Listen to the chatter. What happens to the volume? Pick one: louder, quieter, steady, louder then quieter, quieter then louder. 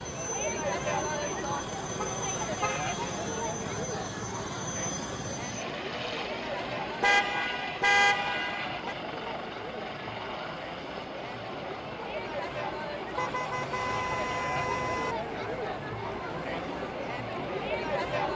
quieter then louder.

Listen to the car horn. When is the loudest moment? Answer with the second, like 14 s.
8 s.